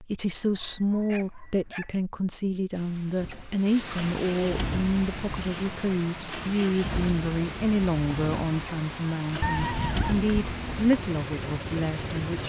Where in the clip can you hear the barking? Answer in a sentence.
You can hear the barking from 0.3 to 1.9 s and from 9.4 to 11.0 s.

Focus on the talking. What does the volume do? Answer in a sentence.
The volume of the talking stays about the same.